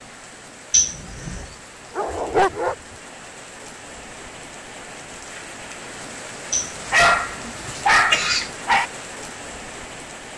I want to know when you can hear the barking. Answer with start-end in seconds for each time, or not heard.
1.9-2.8, 6.9-8.8.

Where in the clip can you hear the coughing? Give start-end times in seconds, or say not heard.
0.7-1.6, 6.5-8.5.